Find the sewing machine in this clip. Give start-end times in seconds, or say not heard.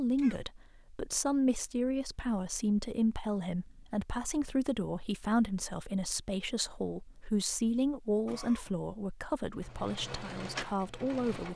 9.5-11.5.